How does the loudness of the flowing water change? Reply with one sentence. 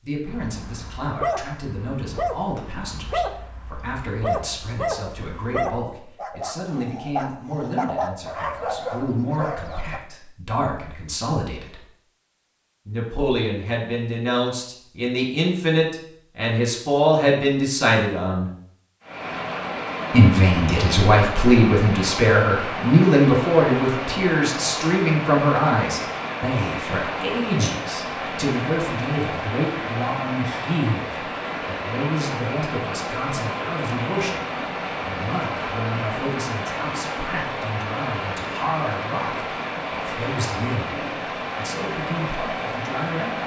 The loudness of the flowing water stays about the same.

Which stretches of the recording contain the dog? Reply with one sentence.
The dog can be heard from 0.2 to 10.0 s.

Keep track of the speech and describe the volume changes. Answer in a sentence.
The loudness of the speech goes up, then down.